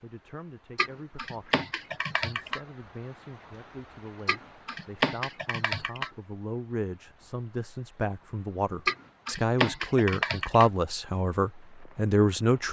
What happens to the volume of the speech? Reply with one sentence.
The loudness of the speech goes up.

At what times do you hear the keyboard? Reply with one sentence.
The keyboard can be heard from 0.8 to 2.6 s, from 4.2 to 6.1 s and from 8.8 to 10.7 s.